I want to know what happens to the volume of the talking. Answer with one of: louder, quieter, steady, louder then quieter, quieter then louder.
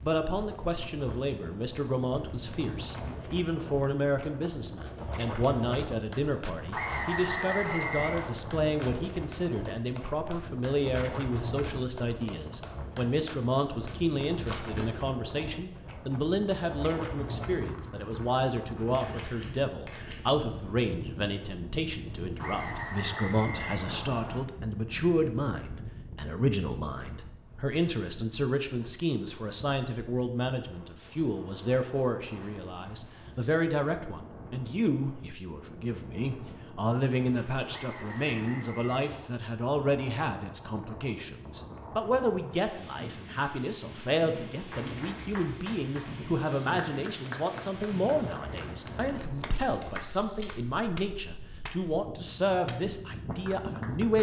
steady.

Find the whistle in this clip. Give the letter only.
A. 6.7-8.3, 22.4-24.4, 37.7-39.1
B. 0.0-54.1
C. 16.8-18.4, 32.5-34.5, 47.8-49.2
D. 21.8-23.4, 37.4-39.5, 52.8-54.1
A.